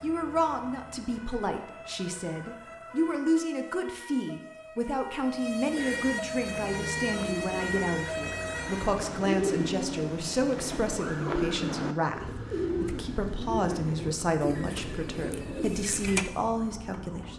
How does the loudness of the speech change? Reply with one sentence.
The loudness of the speech stays about the same.